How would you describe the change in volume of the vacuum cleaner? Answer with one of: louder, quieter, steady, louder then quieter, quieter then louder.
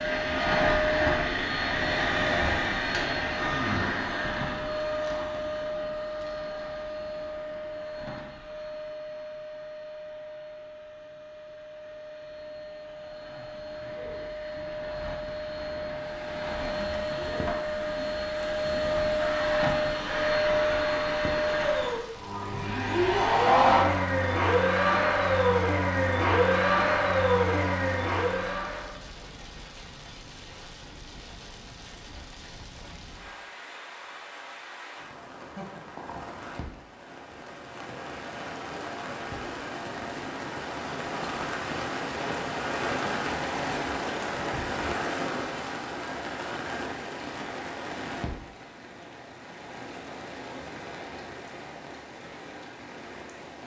quieter then louder.